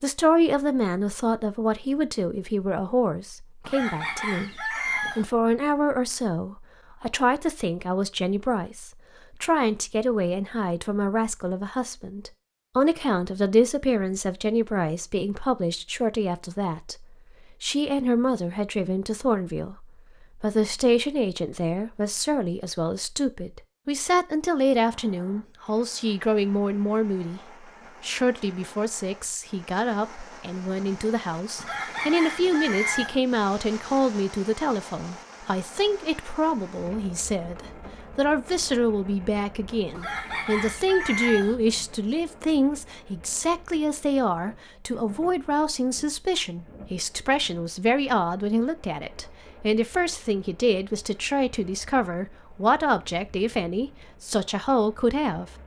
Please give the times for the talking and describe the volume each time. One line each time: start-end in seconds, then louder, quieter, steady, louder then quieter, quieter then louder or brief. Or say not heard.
0.0-27.4 steady
28.0-55.5 steady.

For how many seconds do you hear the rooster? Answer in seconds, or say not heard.
5 s.